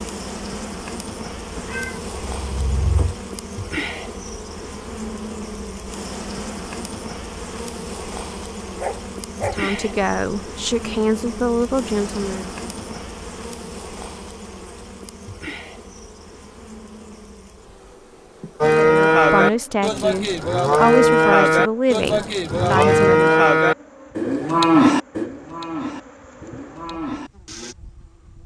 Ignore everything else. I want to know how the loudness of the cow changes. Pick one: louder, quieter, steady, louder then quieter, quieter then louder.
quieter.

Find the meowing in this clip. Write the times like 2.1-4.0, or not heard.
1.6-3.1, 22.5-23.1.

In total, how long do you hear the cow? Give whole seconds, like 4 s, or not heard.
9 s.